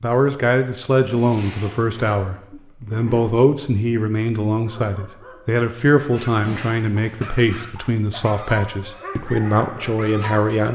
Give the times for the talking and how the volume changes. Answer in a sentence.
You can hear the talking from 0.0 to 10.6 s, at a steady volume.